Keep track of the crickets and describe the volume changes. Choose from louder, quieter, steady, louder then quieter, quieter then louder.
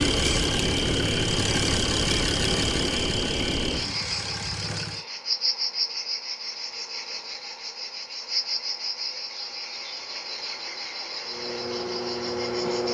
quieter.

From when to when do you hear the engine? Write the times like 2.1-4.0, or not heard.
0.0-5.0, 11.2-12.8.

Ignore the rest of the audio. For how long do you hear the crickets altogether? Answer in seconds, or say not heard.
13 s.